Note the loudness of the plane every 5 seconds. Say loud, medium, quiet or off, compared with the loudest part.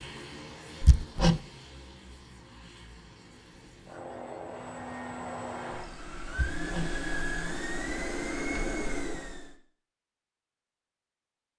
medium, loud, off.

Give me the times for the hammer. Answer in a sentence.
You can hear the hammer from 0.8 to 1.4 s and from 6.3 to 6.9 s.